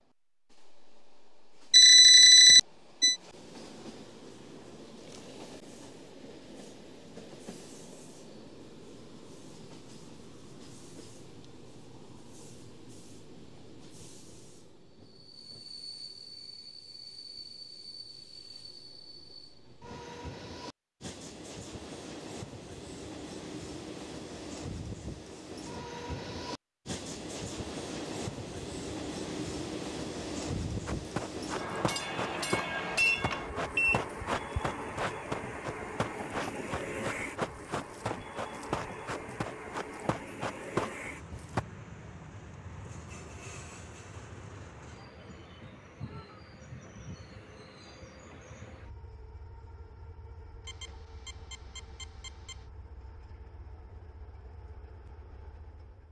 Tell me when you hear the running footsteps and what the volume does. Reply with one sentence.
You can hear the running footsteps from 30.9 to 41.6 s, at a steady volume.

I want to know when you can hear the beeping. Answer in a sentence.
You can hear the beeping from 1.7 to 3.1 s, from 32.0 to 34.0 s and from 50.6 to 52.6 s.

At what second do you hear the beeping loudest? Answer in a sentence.
The volume of the beeping peaks at 2 seconds.